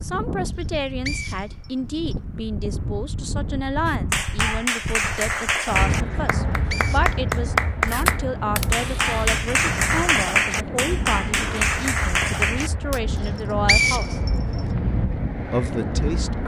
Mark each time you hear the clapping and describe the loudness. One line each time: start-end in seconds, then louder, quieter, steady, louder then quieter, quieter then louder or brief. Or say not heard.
3.9-13.0 steady.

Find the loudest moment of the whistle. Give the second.
14 s.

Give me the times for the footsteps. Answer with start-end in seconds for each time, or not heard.
not heard.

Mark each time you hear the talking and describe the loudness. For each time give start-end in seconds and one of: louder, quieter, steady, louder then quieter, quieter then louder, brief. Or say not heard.
0.0-14.2 steady
15.5-16.4 brief.